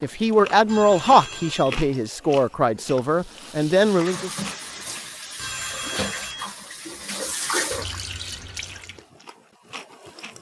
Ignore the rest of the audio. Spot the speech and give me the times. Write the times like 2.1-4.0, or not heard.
0.0-4.3.